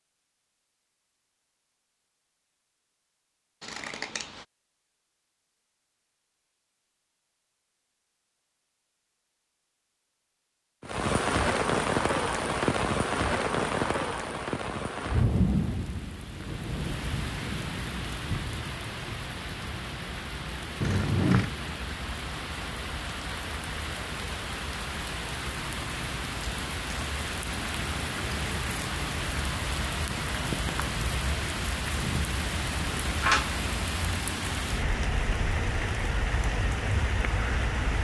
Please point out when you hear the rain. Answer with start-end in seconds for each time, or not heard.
10.8-37.9.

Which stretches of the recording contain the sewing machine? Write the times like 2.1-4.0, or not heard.
not heard.